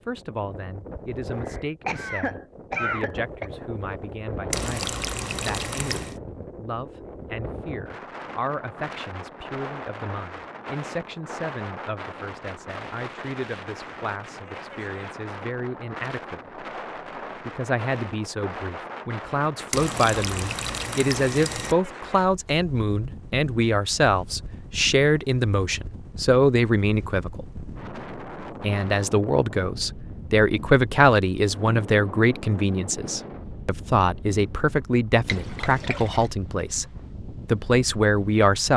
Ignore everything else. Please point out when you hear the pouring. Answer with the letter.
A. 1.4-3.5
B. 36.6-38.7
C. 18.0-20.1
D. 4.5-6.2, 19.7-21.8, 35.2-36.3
D.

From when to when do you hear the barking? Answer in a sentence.
You can't hear the barking here.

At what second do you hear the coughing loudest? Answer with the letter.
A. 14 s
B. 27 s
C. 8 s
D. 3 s
D.